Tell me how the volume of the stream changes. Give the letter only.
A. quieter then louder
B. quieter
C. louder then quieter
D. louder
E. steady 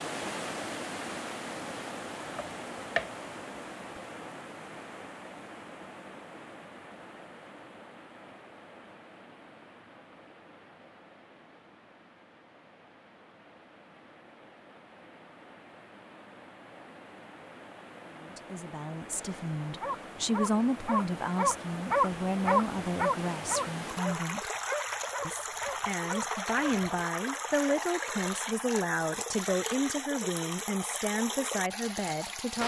A.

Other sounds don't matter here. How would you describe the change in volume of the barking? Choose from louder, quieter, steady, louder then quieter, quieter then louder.
louder then quieter.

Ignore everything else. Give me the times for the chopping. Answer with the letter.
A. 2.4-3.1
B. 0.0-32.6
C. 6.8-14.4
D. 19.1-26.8
A.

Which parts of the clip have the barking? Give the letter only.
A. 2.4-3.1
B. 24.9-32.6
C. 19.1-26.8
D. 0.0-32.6
C.